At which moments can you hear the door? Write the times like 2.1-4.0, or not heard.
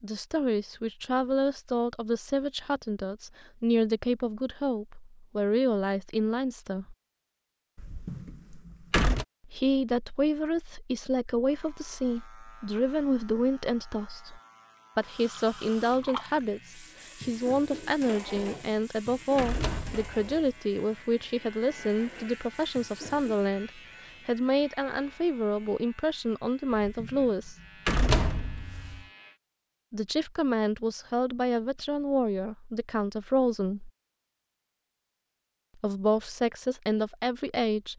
7.8-9.2, 18.4-20.5, 26.8-29.0.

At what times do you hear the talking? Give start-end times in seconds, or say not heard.
0.0-7.0, 9.4-27.6, 29.9-33.9, 35.8-37.9.